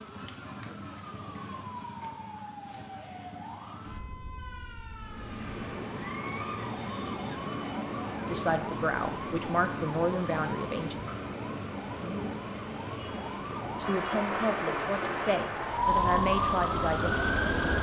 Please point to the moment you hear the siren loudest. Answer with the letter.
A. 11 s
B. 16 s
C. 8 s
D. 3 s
B.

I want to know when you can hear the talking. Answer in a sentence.
You can hear the talking from 8.3 to 11.0 s and from 13.8 to 17.3 s.